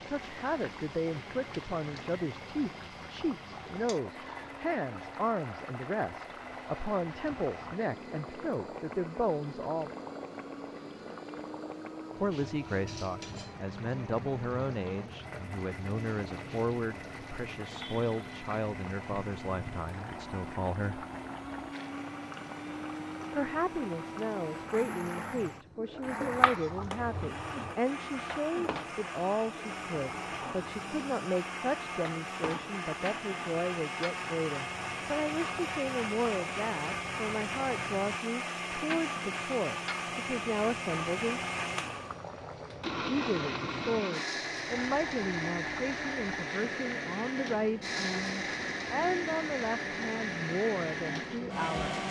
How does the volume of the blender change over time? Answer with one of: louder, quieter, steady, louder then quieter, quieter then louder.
louder.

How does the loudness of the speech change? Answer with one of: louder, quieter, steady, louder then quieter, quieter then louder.
steady.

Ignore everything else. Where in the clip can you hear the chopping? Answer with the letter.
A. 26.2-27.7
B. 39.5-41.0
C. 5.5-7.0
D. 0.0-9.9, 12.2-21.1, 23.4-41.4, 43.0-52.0
A.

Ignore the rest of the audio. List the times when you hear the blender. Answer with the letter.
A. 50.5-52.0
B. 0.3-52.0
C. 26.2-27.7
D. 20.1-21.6
B.